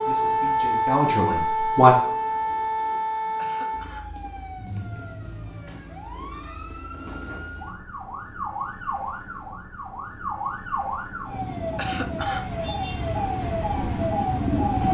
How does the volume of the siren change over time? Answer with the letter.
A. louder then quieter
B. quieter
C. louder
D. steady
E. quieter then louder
E.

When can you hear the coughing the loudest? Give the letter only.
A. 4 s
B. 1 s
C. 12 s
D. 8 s
C.